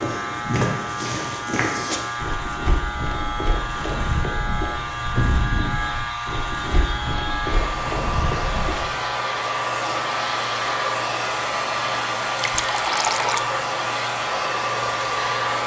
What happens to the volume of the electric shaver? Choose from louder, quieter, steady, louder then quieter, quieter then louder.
steady.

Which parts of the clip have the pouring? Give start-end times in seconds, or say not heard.
12.3-13.4.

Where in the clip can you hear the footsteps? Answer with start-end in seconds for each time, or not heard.
0.0-8.9.